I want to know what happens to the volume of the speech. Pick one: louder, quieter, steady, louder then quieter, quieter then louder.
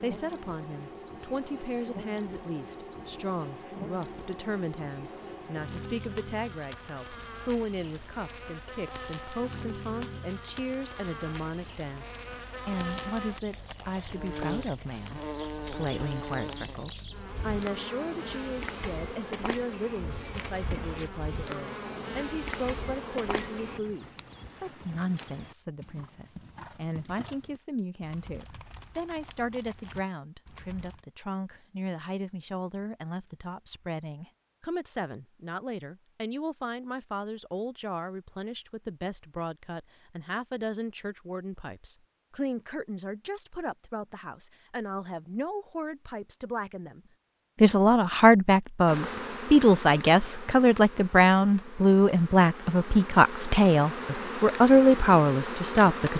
louder.